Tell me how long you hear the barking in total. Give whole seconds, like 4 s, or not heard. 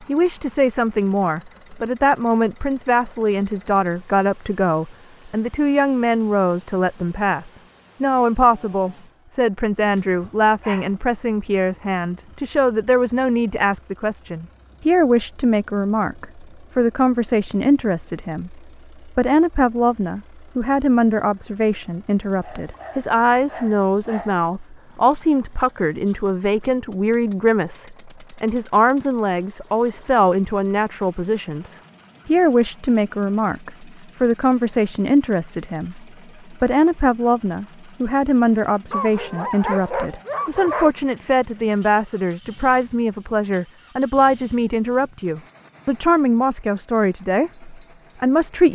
5 s.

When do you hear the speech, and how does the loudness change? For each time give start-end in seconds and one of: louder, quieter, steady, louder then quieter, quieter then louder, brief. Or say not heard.
0.1-48.7 steady.